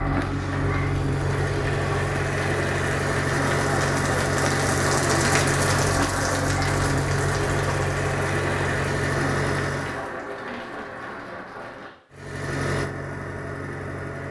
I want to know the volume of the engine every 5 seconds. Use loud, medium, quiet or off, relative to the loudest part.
loud, loud, medium.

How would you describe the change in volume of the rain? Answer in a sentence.
The volume of the rain goes up, then down.